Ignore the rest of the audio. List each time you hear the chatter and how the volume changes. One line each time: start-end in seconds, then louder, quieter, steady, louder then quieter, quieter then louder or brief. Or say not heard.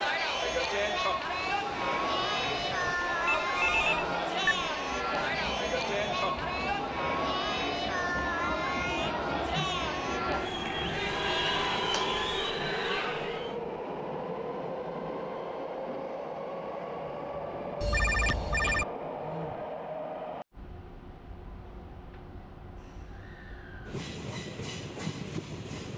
0.0-13.6 steady.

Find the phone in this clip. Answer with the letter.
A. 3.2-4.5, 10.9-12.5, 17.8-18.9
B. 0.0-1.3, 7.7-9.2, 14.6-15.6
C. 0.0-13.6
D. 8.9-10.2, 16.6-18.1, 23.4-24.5
A.